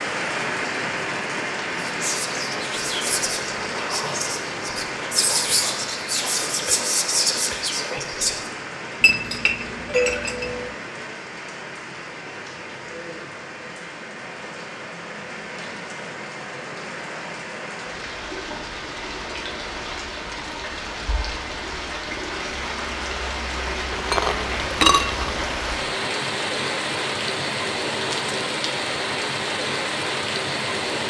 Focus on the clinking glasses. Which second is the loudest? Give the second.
25 s.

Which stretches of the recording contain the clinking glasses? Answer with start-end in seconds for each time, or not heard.
9.0-10.7, 23.9-25.4.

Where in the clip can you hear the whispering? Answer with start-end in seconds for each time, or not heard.
1.8-8.4.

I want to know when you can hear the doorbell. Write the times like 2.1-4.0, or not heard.
9.8-10.7.